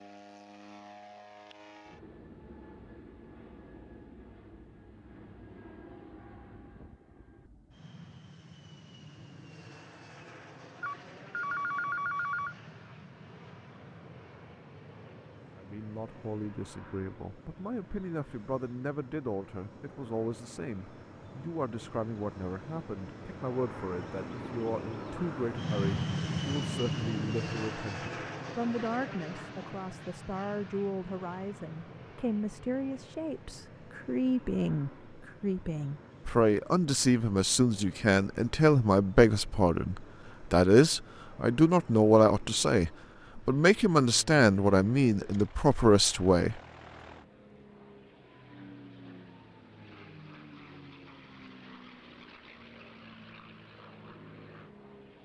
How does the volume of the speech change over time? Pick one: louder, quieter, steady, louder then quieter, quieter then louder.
louder.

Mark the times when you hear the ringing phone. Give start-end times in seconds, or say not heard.
10.8-12.6.